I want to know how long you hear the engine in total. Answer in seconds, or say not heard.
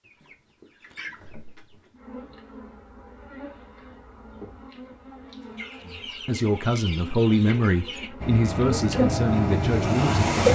2 s.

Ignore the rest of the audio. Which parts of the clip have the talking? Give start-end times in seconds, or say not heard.
5.8-10.4.